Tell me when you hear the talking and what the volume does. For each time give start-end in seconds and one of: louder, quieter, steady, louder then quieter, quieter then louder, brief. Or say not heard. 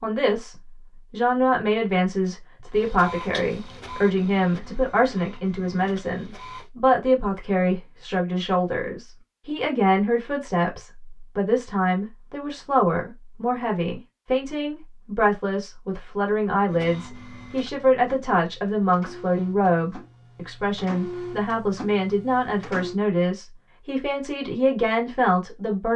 0.0-25.9 steady.